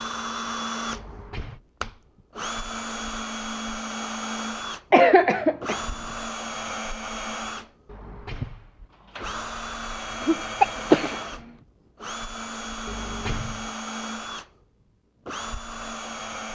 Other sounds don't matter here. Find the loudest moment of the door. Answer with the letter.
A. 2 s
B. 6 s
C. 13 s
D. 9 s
C.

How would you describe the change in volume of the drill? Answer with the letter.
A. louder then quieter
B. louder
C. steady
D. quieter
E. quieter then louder
C.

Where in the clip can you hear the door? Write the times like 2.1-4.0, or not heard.
0.9-1.6, 7.8-9.3, 12.8-13.7.